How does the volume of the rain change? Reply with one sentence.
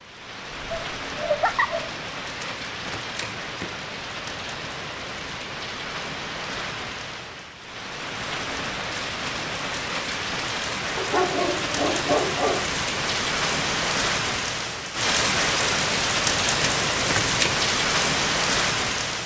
The volume of the rain goes up.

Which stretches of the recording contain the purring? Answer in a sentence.
You can't hear the purring here.